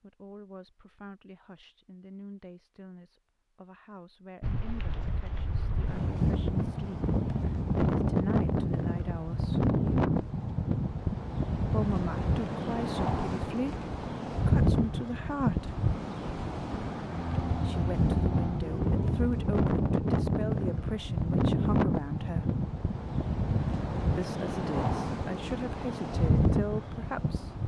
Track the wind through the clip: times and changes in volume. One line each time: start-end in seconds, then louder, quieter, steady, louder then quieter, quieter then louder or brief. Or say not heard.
4.4-27.6 steady.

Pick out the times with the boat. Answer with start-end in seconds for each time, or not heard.
17.1-19.3.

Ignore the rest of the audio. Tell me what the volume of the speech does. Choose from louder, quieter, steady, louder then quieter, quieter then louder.
louder.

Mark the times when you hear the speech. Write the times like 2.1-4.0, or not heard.
0.0-9.7, 11.7-15.8, 17.6-22.6, 24.1-27.5.